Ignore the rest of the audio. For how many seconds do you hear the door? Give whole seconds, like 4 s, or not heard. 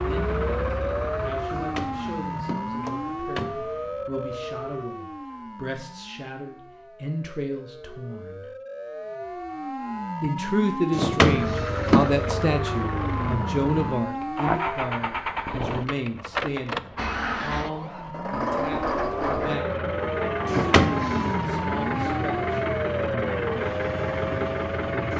5 s.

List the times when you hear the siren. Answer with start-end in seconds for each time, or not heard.
0.0-14.9, 17.8-25.1.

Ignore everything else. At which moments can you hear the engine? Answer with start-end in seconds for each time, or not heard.
0.0-4.7, 11.2-25.1.